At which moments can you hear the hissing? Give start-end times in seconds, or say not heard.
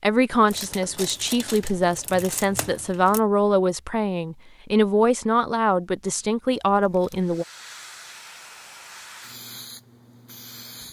7.2-10.8.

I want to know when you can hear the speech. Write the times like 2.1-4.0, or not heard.
0.0-7.5.